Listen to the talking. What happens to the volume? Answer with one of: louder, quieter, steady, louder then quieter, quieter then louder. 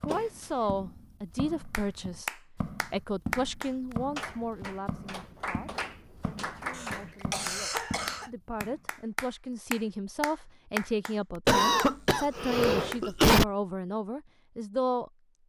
quieter then louder.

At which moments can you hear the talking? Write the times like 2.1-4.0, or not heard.
0.0-15.4.